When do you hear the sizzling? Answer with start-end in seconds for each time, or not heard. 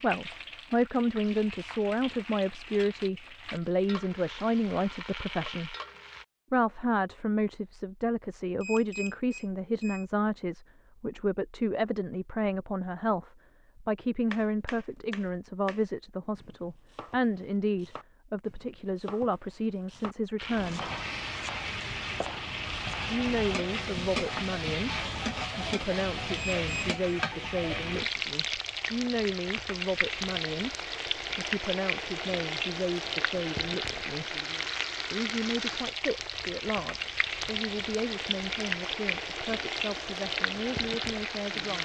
0.0-6.2, 20.4-41.8.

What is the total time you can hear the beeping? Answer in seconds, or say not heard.
2 s.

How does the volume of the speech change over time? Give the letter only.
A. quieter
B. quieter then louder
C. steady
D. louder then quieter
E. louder
A.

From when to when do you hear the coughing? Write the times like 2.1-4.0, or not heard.
not heard.